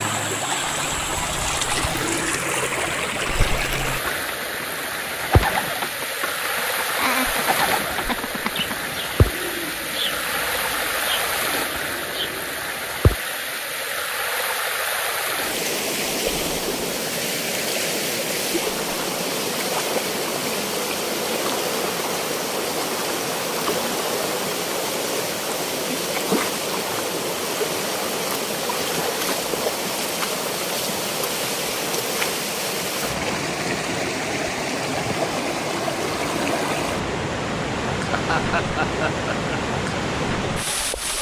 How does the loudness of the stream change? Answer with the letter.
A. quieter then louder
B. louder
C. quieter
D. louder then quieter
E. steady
E.